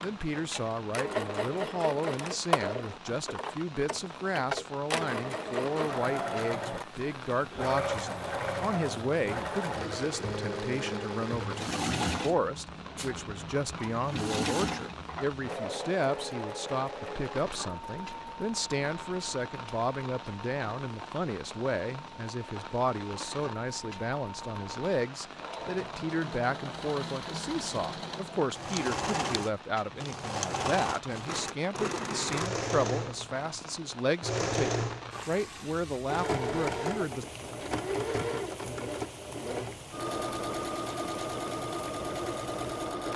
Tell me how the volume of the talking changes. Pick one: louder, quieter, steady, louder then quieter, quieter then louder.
steady.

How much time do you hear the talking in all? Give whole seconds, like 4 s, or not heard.
37 s.